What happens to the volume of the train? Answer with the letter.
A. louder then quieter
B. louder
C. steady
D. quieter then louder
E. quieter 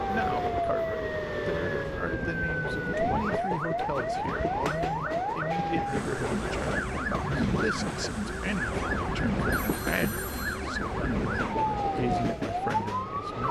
C.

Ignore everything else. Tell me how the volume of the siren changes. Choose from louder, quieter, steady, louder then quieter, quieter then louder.
steady.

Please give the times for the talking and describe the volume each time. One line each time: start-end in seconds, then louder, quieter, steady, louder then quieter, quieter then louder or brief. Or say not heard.
0.1-13.4 steady.